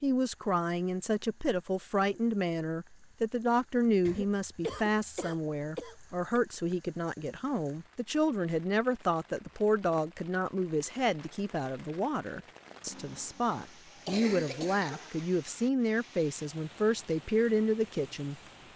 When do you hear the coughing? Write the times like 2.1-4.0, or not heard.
4.0-6.4, 13.4-15.2.